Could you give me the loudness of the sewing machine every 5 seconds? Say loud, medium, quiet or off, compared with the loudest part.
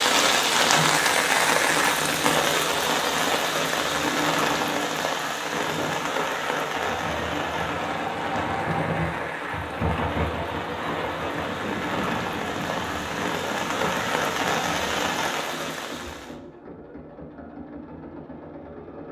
loud, loud, loud, medium.